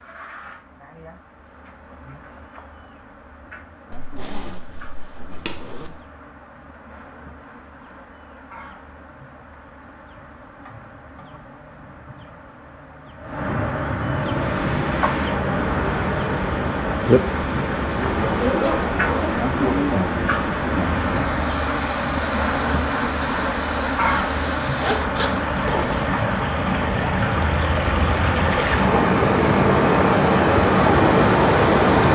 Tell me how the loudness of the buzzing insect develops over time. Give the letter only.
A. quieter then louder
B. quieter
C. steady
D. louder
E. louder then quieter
D.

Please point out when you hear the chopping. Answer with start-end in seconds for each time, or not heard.
not heard.